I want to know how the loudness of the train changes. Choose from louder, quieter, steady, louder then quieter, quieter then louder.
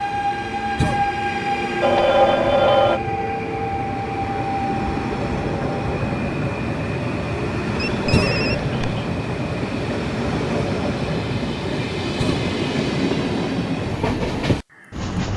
steady.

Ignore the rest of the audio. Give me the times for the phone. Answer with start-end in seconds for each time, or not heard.
1.8-3.0, 7.8-9.1.